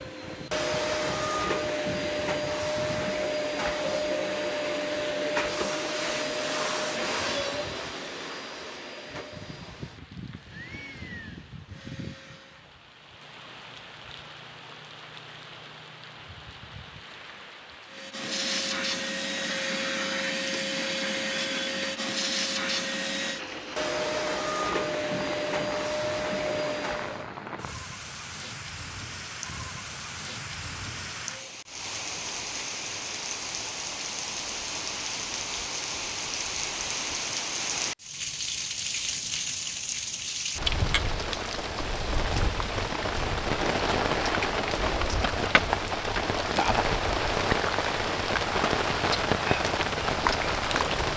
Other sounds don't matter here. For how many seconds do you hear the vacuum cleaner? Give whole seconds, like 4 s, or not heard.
22 s.